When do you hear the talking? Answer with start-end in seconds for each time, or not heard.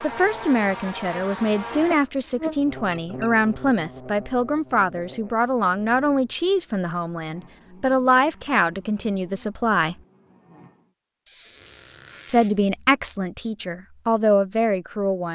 0.0-9.9, 12.2-15.3.